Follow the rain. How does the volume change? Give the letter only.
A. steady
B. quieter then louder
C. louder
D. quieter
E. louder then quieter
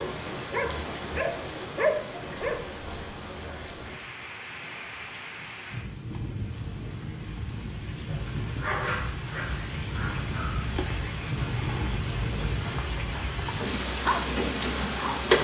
C.